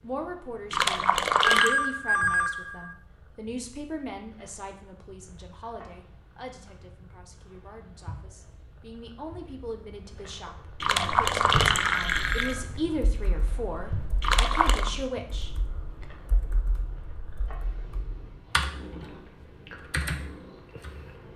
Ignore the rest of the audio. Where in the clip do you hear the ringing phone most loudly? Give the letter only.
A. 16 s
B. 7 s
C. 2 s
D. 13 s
C.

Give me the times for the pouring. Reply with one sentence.
The pouring can be heard from 0.7 to 1.8 s, from 10.8 to 12.6 s and from 14.2 to 14.9 s.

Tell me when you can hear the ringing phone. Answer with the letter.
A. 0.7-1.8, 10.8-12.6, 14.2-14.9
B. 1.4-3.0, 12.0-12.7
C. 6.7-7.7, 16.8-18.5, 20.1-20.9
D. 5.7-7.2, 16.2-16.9
B.